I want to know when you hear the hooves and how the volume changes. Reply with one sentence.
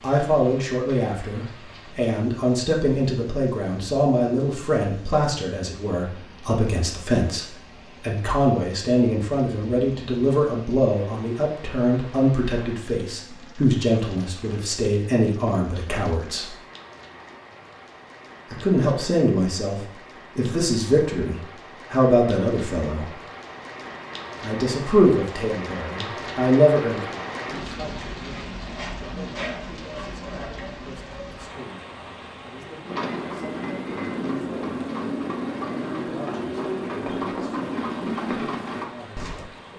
You can hear the hooves from 32.9 to 39.5 s, at a steady volume.